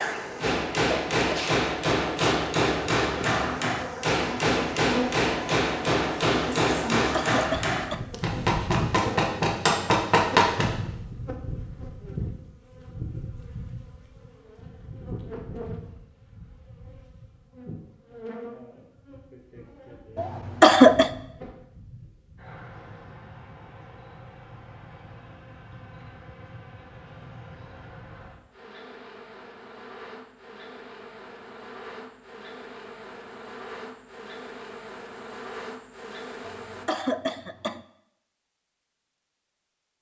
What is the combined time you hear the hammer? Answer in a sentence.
The hammer can be heard for 10 seconds in total.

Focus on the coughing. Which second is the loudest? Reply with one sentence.
The volume of the coughing peaks at 21 seconds.